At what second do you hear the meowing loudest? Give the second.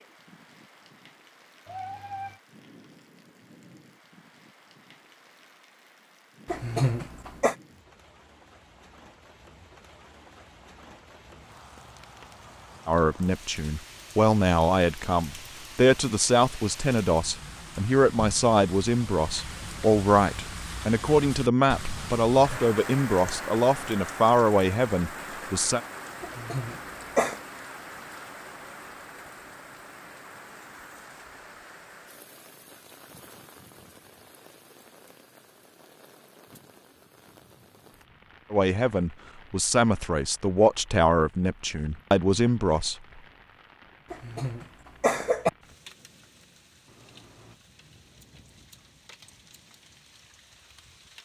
2 s.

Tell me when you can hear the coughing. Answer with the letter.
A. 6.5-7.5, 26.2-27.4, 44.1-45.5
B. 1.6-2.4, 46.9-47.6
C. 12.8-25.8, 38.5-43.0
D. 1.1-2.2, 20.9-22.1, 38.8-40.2
A.